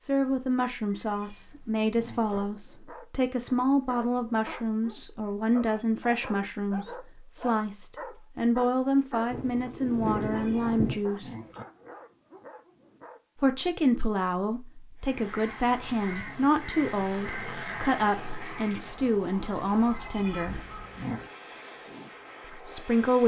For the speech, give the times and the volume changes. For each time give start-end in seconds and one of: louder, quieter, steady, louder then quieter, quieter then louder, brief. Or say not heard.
0.0-11.3 steady
13.4-20.6 steady
22.6-23.2 brief.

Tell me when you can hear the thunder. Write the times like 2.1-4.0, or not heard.
9.3-10.9.